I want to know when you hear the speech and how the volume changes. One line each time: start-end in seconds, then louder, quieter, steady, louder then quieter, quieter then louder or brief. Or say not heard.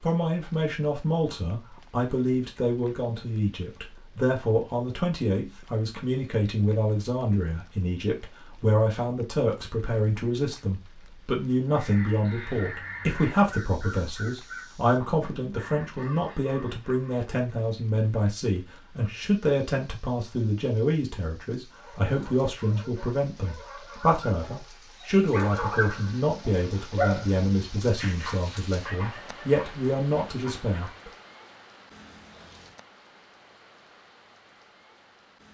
0.0-31.1 steady.